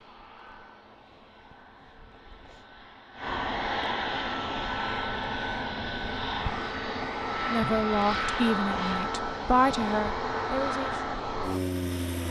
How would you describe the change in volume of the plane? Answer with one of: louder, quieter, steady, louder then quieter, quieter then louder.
louder.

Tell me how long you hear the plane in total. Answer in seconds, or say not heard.
12 s.